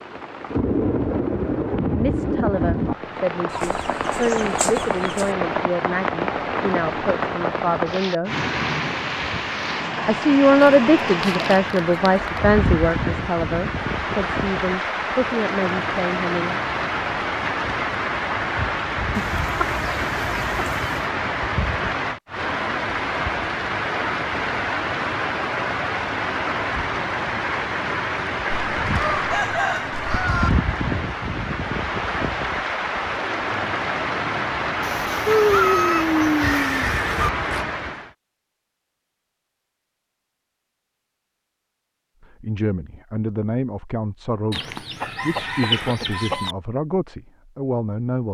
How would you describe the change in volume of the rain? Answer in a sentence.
The loudness of the rain stays about the same.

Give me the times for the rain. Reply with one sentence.
The rain can be heard from 0.0 to 38.1 s.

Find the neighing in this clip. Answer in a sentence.
The neighing can be heard from 36.4 to 37.6 s.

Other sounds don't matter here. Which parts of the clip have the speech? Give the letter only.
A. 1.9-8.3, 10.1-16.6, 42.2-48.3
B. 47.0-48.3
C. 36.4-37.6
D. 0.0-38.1
A.